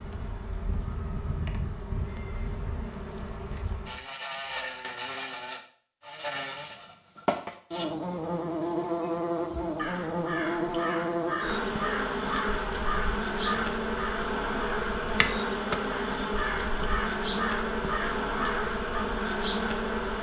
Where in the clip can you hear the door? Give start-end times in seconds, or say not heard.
not heard.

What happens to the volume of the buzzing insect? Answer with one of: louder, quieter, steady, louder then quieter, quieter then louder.
louder.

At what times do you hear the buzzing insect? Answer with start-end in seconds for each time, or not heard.
0.0-20.1.